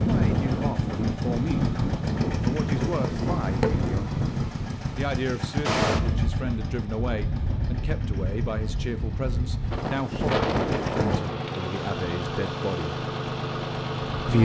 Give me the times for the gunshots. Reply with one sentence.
You can't hear the gunshots here.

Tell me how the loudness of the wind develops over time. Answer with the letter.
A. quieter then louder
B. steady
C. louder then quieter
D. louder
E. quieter
E.